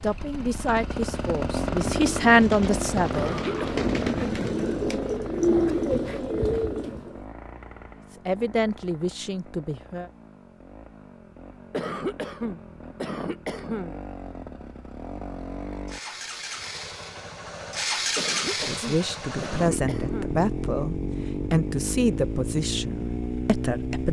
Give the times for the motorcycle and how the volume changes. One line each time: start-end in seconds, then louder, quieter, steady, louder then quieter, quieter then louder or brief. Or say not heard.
0.0-24.0 quieter then louder.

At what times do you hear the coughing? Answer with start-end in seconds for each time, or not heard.
3.1-3.9, 11.7-14.1, 18.1-20.4.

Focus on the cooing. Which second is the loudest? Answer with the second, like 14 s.
6 s.